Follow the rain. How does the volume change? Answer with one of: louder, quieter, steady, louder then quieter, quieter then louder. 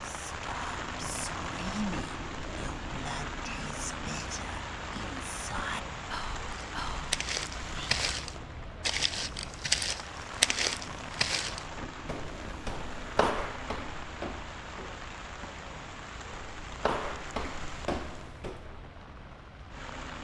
quieter.